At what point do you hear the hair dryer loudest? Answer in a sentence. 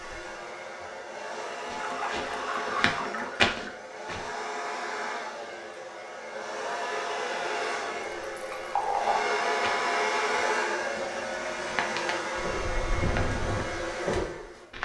The volume of the hair dryer peaks at 10 seconds.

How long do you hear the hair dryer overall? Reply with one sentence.
You can hear the hair dryer for 15 seconds altogether.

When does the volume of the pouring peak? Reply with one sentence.
The loudest moment of the pouring is at 9 seconds.